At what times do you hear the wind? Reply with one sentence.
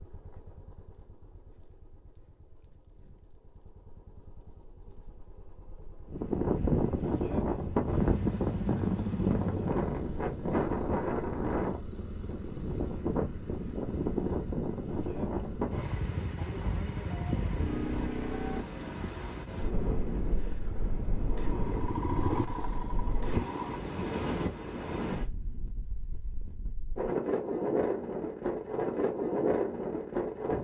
You can hear the wind from 6.1 to 30.5 s.